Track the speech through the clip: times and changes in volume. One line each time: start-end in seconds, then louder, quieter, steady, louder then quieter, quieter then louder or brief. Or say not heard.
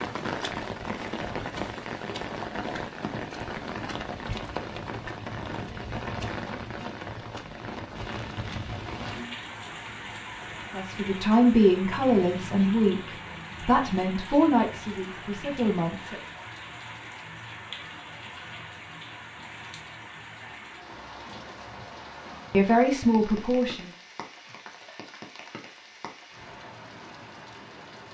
10.8-16.2 quieter
22.5-23.9 brief.